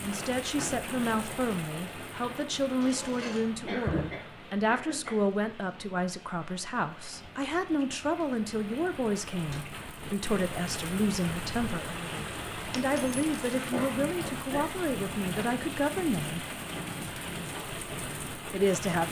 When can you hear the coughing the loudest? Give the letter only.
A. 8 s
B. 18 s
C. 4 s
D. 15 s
C.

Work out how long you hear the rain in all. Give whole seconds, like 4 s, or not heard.
19 s.